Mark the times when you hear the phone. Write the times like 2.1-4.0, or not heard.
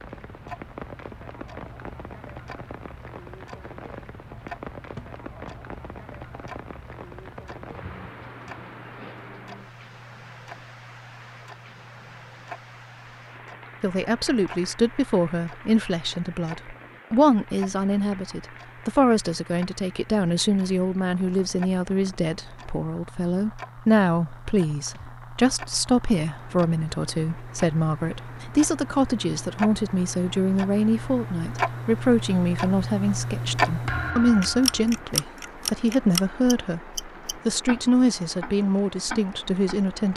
not heard.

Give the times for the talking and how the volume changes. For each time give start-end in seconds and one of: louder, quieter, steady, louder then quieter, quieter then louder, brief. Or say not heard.
13.8-40.1 steady.